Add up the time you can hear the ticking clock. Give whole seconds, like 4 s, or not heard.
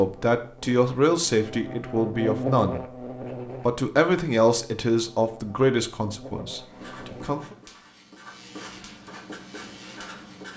not heard.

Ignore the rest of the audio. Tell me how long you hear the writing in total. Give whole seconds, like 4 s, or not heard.
4 s.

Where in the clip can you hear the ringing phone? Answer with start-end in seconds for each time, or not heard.
not heard.